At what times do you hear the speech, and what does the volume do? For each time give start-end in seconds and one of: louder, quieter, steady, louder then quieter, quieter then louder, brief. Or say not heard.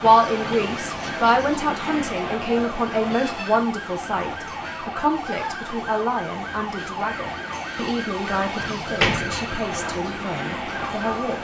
0.0-11.3 quieter.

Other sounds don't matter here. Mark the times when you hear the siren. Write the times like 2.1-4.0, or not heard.
0.1-11.3.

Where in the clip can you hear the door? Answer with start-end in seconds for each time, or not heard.
8.6-9.8.